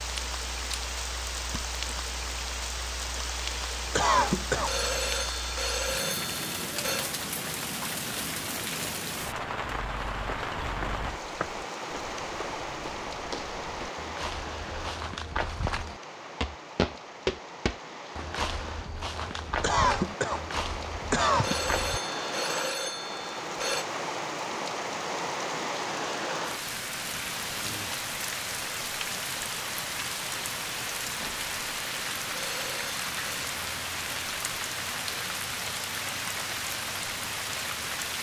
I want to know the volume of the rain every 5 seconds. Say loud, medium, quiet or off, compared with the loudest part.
loud, loud, loud, medium, loud, loud, loud, loud.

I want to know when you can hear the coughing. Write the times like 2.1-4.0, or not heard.
3.9-4.8, 19.6-21.6.